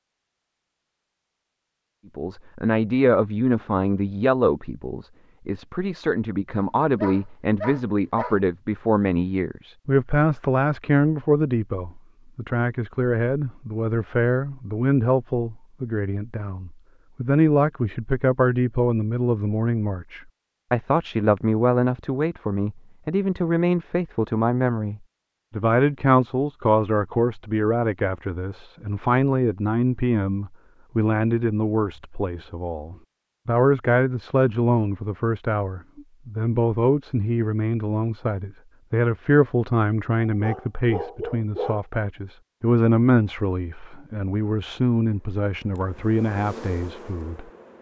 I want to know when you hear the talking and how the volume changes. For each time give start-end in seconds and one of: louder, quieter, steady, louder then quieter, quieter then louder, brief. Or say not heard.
2.1-47.5 steady.